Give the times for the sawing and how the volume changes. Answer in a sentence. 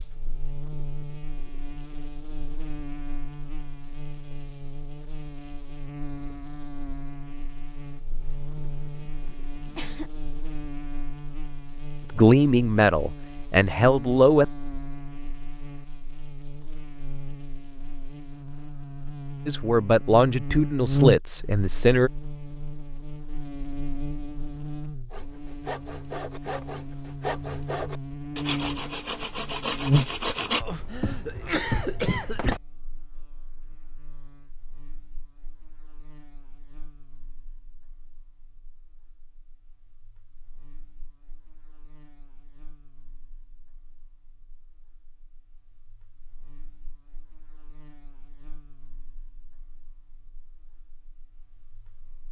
The sawing can be heard from 25.1 to 30.6 s, getting louder.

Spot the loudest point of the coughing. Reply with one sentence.
The volume of the coughing peaks at 32 seconds.